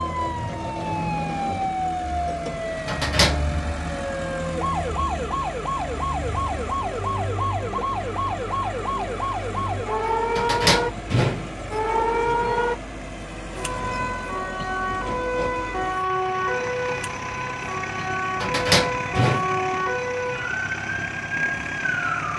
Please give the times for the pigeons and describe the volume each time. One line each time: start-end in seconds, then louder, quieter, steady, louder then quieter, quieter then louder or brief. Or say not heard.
not heard.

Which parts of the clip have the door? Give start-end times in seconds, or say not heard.
2.9-3.5, 10.3-12.1, 18.4-19.4.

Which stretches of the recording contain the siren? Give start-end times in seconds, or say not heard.
0.0-22.3.